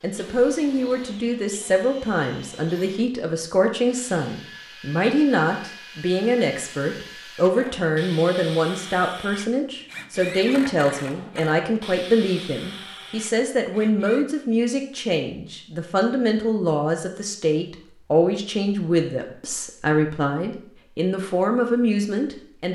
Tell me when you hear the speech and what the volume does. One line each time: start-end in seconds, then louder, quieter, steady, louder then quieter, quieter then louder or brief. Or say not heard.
0.0-22.7 steady.